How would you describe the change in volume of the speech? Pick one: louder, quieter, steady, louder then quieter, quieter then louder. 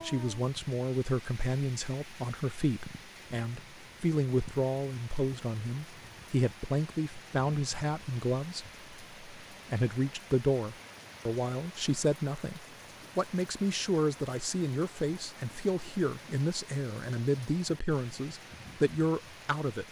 steady.